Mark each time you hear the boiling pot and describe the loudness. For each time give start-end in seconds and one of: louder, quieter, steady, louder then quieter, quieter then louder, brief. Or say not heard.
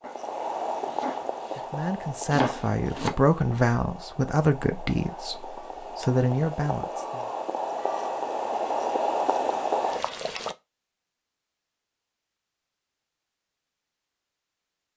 0.0-10.6 quieter then louder.